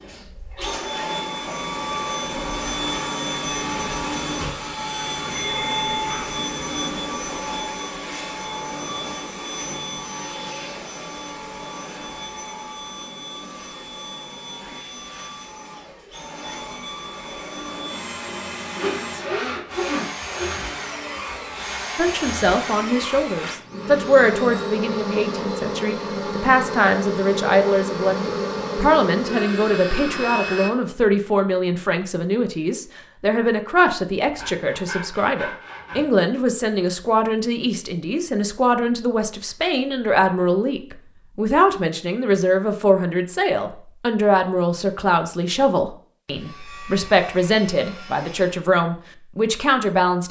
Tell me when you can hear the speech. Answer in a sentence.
You can hear the speech from 21.9 to 50.2 s.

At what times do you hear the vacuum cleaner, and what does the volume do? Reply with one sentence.
You can hear the vacuum cleaner from 0.0 to 30.7 s, getting quieter then louder.